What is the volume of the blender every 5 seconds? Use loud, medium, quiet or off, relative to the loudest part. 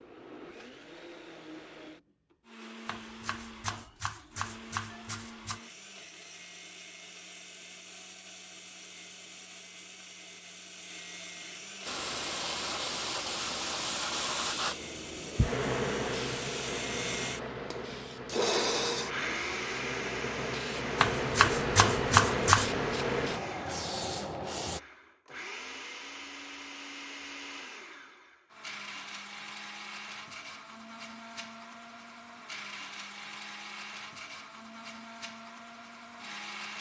quiet, quiet, medium, loud, medium, medium, medium, medium.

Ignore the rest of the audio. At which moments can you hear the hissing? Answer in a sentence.
You can hear the hissing from 11.8 to 24.8 s.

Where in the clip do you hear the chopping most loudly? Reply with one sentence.
The volume of the chopping peaks at 22 seconds.